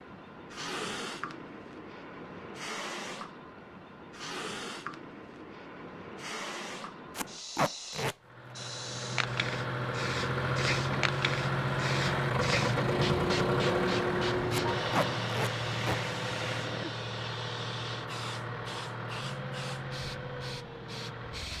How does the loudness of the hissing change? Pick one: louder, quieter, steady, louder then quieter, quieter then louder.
louder then quieter.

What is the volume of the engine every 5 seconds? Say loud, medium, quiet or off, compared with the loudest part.
off, medium, loud, medium, medium.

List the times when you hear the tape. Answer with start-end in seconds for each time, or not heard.
7.2-8.2, 14.5-15.9.